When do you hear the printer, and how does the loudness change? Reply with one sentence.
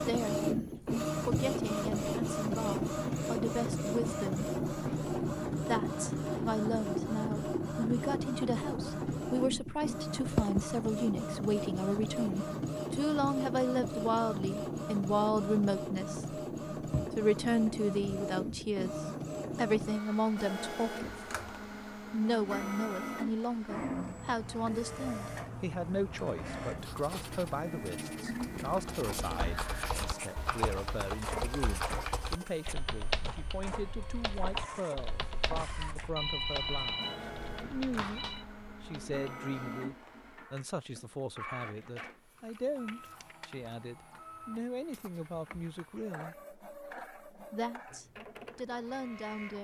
The printer can be heard from 0.0 to 49.5 s, getting quieter.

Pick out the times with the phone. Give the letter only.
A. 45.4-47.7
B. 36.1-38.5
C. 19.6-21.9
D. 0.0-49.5
B.